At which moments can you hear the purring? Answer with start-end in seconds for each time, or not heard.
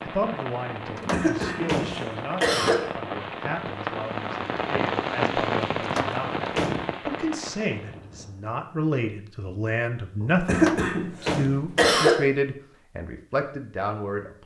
not heard.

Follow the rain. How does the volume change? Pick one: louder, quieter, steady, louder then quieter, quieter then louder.
louder then quieter.